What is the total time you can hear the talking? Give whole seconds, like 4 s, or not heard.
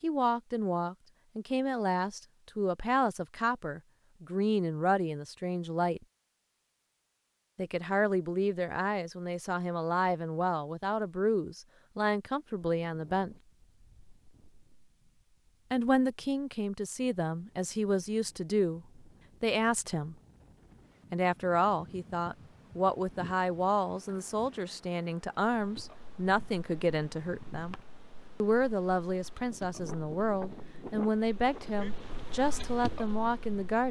28 s.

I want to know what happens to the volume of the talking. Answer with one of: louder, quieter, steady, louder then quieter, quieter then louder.
steady.